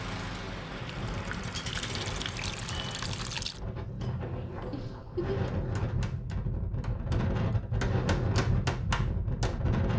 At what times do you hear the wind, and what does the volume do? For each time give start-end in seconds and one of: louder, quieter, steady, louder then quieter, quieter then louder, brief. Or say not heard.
0.2-9.9 louder.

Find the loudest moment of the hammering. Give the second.
9 s.